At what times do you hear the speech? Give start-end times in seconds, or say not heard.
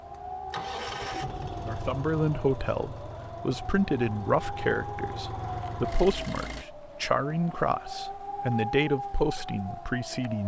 1.6-10.4.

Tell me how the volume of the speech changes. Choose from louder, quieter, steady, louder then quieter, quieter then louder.
steady.